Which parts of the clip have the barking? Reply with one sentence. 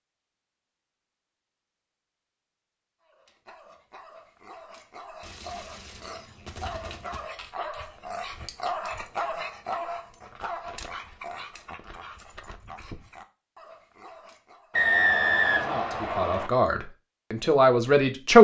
You can hear the barking from 3.0 to 14.8 s.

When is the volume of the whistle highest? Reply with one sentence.
The loudest moment of the whistle is at 15 seconds.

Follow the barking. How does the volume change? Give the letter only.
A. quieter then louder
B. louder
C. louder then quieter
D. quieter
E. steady
C.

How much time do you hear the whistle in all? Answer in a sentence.
You can hear the whistle for 2 seconds altogether.